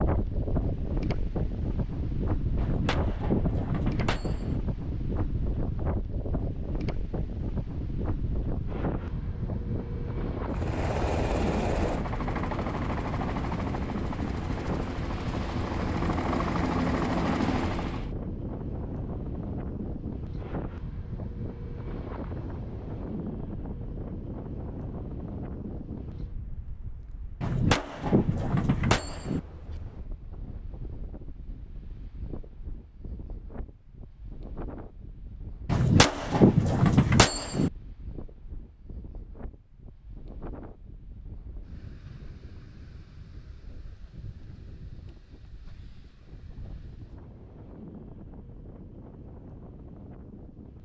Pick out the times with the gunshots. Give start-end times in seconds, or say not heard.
2.5-4.6, 27.4-29.4, 35.6-37.7.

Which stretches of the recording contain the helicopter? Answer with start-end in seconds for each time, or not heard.
10.5-18.1.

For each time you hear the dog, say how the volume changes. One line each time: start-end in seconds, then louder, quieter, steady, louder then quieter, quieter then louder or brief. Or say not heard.
not heard.